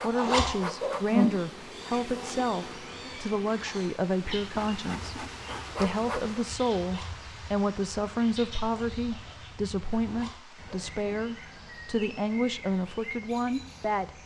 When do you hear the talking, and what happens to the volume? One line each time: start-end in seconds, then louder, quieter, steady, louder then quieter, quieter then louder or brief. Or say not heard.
0.0-14.1 steady.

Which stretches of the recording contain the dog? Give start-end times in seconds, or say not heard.
not heard.